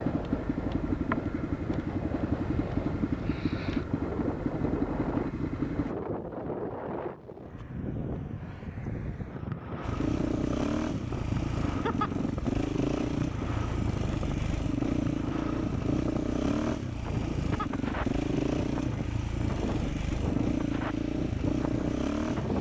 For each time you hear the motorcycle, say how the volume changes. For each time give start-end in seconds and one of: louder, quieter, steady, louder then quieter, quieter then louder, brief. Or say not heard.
0.0-6.0 steady
9.8-22.5 steady.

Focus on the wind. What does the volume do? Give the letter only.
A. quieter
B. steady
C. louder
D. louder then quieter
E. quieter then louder
B.